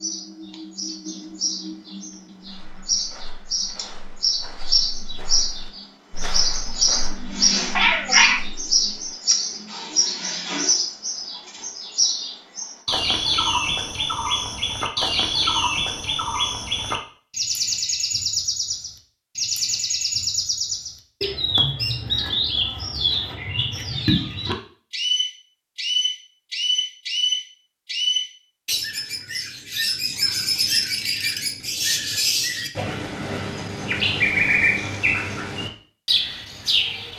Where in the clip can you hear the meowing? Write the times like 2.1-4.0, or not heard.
7.8-8.4.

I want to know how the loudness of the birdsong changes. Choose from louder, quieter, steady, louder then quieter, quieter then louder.
steady.